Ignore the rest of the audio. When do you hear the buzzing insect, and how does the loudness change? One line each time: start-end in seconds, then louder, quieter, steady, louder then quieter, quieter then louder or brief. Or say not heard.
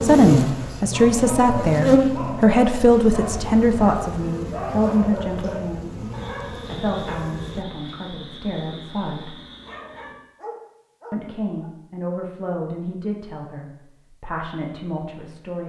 0.0-7.7 louder then quieter.